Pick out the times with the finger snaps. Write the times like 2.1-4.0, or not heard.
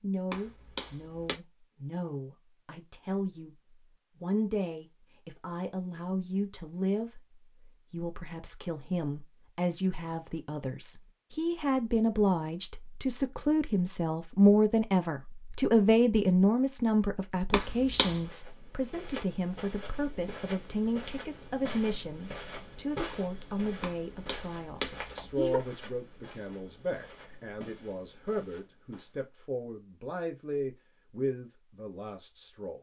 0.3-1.4, 17.5-18.2, 23.8-25.6.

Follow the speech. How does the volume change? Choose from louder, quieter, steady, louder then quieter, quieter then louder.
louder then quieter.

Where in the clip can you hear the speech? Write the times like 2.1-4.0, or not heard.
0.0-3.5, 4.2-32.7.